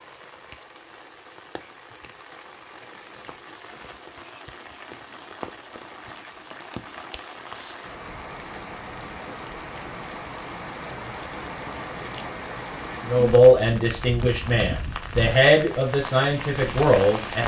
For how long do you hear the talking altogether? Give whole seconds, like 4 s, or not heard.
4 s.